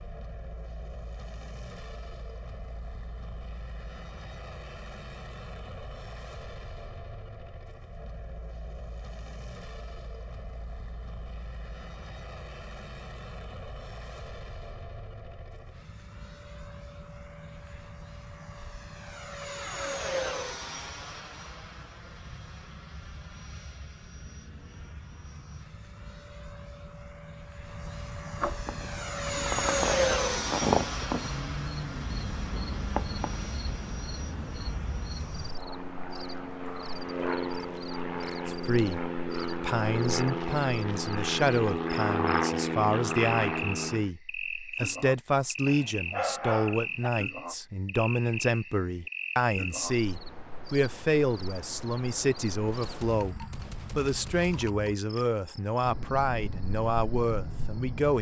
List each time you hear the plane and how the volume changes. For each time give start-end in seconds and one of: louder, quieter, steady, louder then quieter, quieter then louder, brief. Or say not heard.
0.0-44.1 louder.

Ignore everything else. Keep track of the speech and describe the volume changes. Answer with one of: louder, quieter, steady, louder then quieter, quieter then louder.
steady.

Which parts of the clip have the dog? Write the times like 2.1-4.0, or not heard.
45.6-47.1.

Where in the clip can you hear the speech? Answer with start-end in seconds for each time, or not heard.
38.5-58.1.